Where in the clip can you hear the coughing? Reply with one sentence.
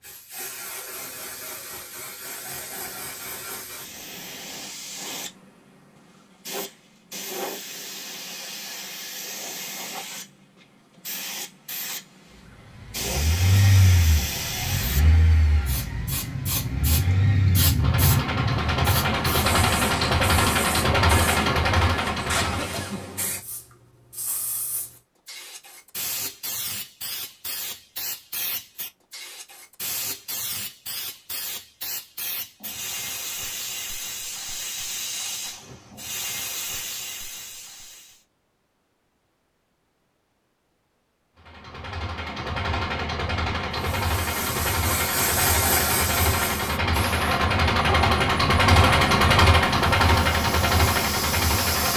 The coughing can be heard from 22.4 to 23.1 s.